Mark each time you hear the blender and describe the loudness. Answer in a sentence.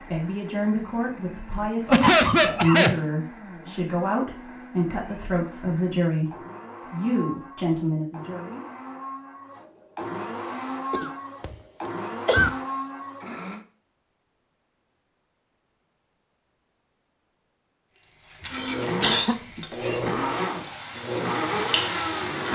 The blender can be heard from 0.0 to 13.7 s, getting louder; and from 18.5 to 22.5 s, at a steady volume.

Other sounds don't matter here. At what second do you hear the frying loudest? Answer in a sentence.
The loudest moment of the frying is at 22 seconds.